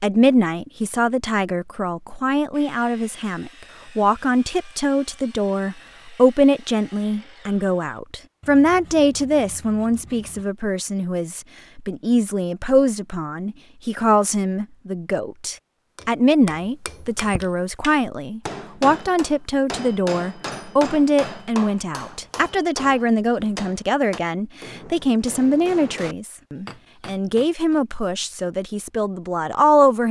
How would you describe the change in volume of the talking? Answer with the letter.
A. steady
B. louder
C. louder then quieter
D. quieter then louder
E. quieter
A.